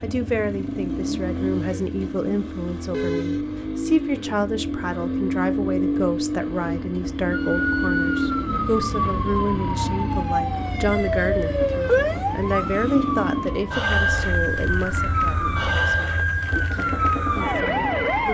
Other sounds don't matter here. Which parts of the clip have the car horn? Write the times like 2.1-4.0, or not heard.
2.9-3.8, 14.7-16.0.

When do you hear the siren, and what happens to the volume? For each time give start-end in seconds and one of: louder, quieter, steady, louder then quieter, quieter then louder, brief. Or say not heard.
7.3-18.2 steady.